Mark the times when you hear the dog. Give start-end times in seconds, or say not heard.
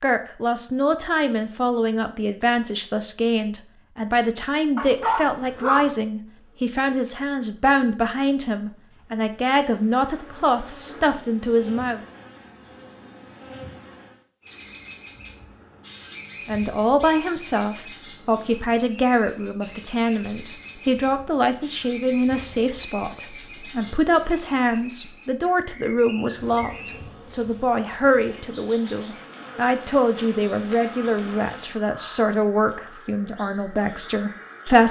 4.8-5.9.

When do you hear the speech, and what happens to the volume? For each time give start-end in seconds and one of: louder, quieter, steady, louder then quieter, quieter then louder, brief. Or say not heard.
0.0-12.0 steady
16.4-34.8 steady.